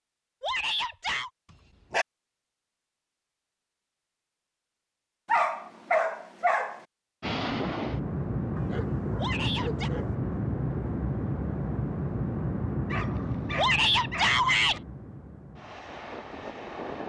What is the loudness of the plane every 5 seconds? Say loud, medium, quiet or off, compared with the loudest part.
off, loud, loud, medium.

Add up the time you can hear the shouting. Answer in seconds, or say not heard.
3 s.